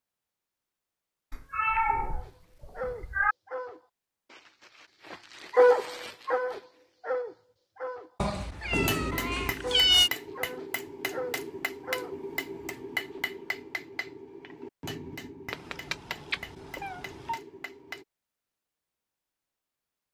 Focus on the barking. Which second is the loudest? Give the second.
6 s.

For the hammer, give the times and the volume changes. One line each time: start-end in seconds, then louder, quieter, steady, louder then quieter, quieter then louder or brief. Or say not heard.
8.7-18.1 quieter.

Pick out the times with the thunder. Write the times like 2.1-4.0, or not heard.
not heard.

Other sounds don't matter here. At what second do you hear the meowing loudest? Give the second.
10 s.